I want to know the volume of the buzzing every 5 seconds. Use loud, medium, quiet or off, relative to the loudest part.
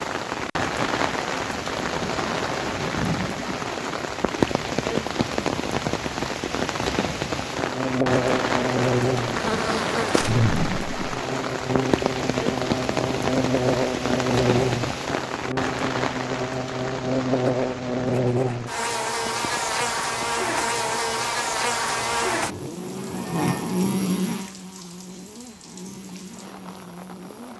off, loud, loud, loud, loud, quiet.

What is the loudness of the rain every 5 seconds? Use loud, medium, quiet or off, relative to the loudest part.
loud, loud, loud, medium, quiet, quiet.